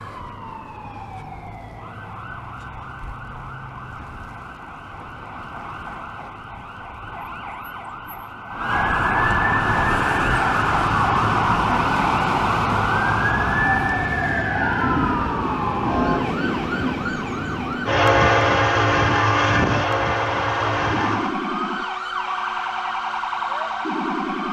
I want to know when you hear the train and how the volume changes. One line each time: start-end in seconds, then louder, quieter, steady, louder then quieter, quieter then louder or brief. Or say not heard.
9.7-21.4 louder.